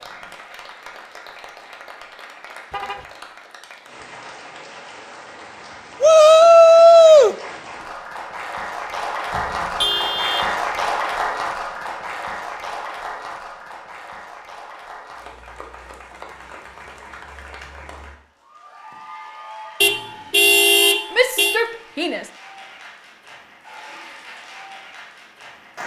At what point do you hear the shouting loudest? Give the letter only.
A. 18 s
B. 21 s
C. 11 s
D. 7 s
D.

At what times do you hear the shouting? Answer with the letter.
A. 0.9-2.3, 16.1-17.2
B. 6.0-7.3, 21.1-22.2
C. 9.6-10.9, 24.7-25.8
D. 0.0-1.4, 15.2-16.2
B.